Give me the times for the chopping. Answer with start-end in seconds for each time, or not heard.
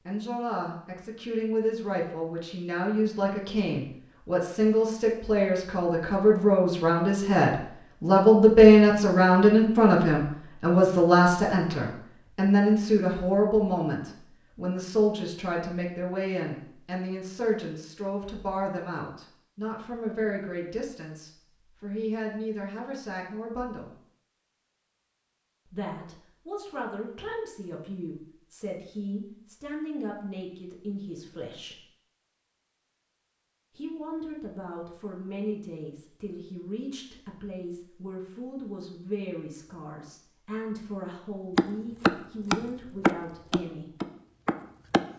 41.5-45.0.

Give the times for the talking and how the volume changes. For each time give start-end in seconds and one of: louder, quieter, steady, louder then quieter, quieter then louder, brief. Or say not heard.
0.1-23.9 louder then quieter
25.6-31.8 steady
33.8-44.0 steady.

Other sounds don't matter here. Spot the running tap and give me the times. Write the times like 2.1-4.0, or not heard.
not heard.